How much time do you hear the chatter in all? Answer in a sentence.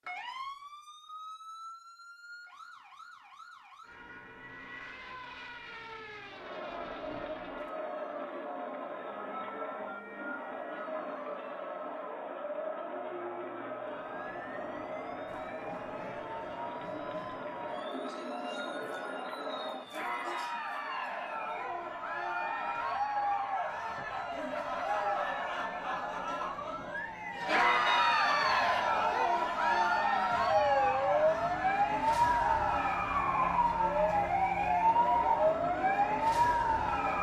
The chatter can be heard for 31 seconds in total.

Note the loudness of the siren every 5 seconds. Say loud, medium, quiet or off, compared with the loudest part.
quiet, quiet, quiet, quiet, quiet, medium, loud, loud.